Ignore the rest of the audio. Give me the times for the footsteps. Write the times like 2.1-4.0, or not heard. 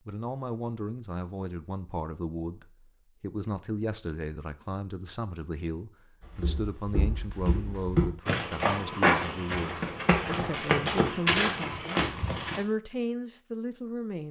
6.2-12.6.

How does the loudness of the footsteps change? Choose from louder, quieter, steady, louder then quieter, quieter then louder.
louder.